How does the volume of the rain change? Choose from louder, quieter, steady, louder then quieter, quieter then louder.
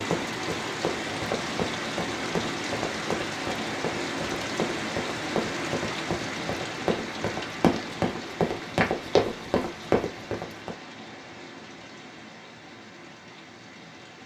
quieter.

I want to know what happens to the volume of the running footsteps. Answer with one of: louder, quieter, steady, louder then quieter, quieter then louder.
louder.